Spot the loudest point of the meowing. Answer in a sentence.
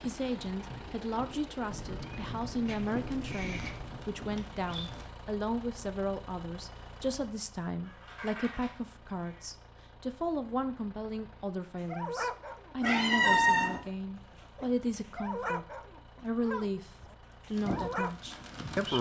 The loudest moment of the meowing is at 13 seconds.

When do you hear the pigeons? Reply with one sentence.
The pigeons can be heard from 0.0 to 5.1 s and from 17.5 to 18.9 s.